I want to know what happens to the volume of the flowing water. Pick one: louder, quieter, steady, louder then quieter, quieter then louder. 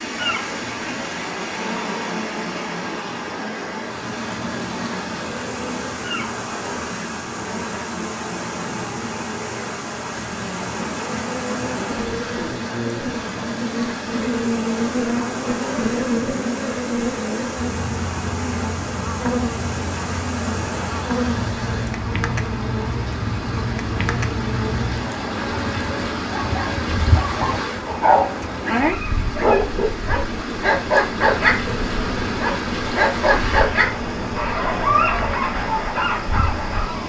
steady.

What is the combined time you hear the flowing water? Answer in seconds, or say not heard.
37 s.